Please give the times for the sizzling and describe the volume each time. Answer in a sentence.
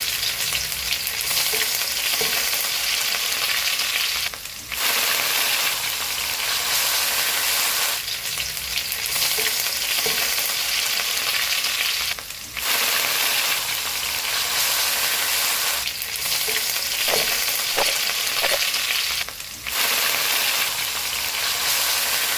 The sizzling can be heard from 0.0 to 22.3 s, at a steady volume.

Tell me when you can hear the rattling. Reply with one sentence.
You can hear the rattling from 17.1 to 18.7 s.